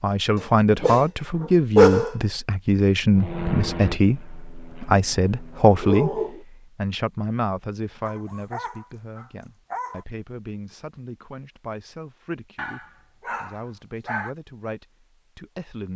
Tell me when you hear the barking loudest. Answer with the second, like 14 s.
2 s.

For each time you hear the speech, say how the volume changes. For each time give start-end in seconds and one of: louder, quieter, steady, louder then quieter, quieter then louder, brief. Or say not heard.
0.0-15.9 quieter.